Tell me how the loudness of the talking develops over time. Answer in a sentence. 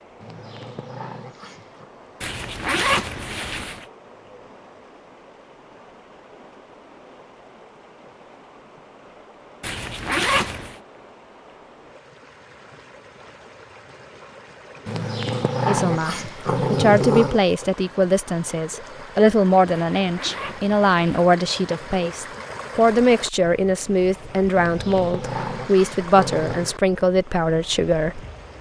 The volume of the talking stays about the same.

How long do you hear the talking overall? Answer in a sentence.
The talking can be heard for 13 seconds in total.